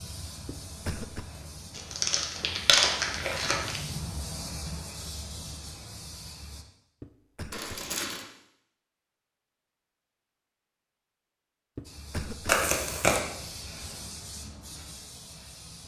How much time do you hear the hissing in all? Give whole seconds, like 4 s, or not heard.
11 s.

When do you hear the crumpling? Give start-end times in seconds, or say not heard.
1.8-3.8, 7.5-8.2, 12.4-13.2.